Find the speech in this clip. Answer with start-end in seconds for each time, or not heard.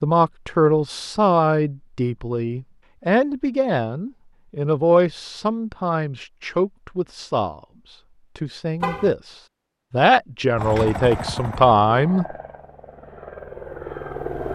0.0-12.2.